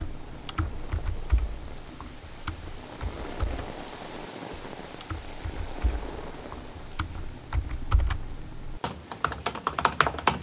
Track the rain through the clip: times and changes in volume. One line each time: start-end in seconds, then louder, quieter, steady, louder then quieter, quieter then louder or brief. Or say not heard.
0.0-10.3 louder then quieter.